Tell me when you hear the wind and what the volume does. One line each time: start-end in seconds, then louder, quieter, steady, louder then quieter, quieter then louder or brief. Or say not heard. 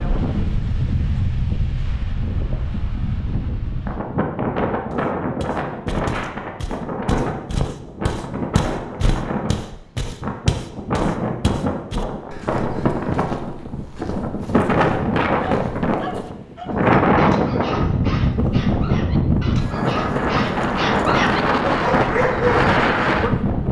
0.0-23.6 louder.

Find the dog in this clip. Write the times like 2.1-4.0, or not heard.
15.3-22.6.